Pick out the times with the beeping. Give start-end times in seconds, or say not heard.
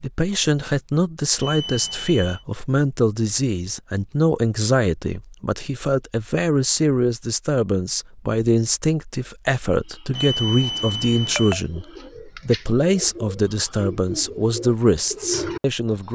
1.4-2.5, 10.1-11.6.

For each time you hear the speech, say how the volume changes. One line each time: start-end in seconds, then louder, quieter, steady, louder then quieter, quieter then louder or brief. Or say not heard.
0.0-16.1 steady.